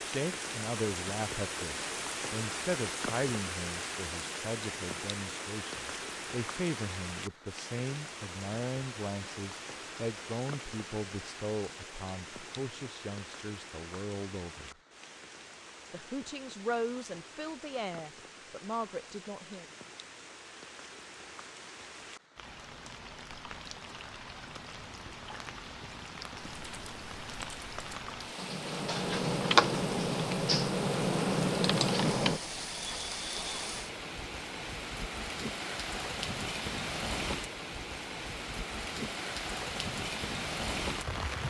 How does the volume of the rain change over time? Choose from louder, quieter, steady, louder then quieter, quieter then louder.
quieter then louder.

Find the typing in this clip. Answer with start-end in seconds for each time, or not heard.
26.4-32.4.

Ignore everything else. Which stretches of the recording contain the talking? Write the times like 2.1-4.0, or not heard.
0.0-14.8, 15.9-19.6.